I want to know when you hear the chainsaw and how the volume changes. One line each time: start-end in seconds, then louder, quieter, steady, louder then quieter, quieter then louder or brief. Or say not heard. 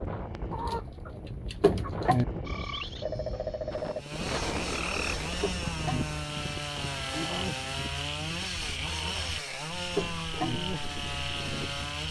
4.0-12.0 steady.